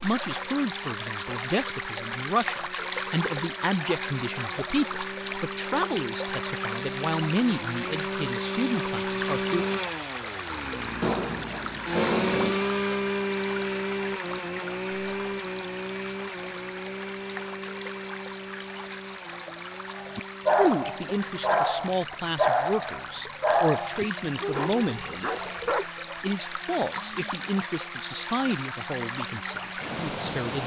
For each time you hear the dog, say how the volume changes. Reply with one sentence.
The dog can be heard briefly from 11.0 to 12.7 s; and from 19.9 to 25.9 s, getting quieter.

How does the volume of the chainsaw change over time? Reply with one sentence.
The volume of the chainsaw goes up, then down.